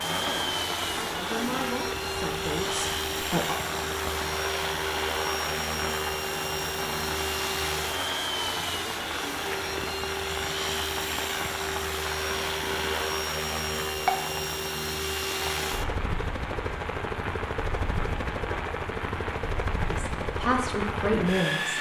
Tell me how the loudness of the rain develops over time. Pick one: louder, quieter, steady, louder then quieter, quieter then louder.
steady.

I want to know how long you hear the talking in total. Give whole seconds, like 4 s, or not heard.
5 s.